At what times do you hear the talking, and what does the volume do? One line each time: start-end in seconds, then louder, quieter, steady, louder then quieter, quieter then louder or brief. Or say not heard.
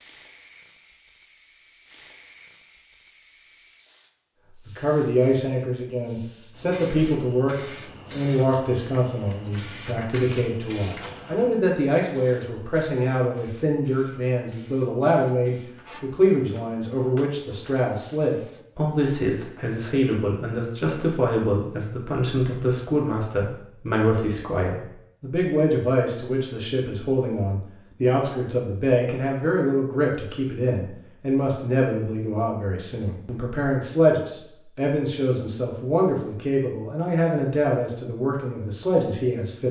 4.7-39.6 steady.